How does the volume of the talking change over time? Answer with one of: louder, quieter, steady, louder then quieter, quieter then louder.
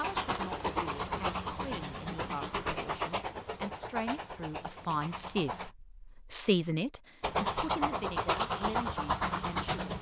louder then quieter.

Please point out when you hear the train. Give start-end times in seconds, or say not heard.
0.0-5.7, 7.2-9.9.